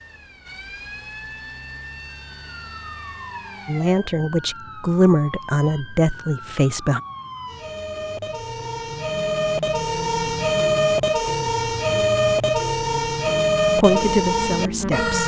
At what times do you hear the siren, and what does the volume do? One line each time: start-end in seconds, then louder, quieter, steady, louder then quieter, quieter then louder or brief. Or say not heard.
0.0-15.2 louder.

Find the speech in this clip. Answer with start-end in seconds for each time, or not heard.
3.6-7.0, 13.8-15.2.